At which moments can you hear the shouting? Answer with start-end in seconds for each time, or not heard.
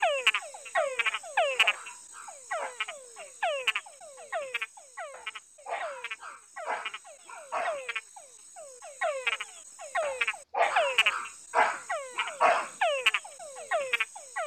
not heard.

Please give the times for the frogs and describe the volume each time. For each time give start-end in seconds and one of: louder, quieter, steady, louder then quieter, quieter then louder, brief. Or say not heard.
0.0-14.4 quieter then louder.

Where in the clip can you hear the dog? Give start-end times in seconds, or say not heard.
1.1-2.8, 5.1-7.8, 10.0-12.7.